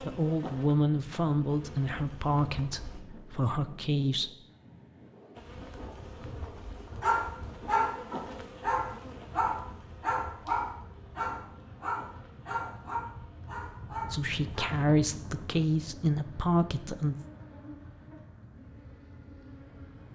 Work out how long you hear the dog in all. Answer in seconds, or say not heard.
8 s.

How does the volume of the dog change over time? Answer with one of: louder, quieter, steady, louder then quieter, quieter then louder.
quieter.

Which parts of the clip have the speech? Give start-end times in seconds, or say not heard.
0.0-4.3, 14.1-17.1.